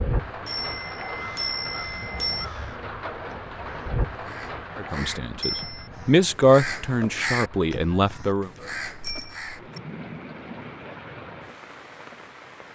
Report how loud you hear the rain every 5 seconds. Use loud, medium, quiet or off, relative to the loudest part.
loud, medium, medium.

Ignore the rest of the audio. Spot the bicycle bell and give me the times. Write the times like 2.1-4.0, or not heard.
0.5-2.5, 5.4-5.8, 9.0-9.8.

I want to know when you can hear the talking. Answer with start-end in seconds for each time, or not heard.
4.8-8.5.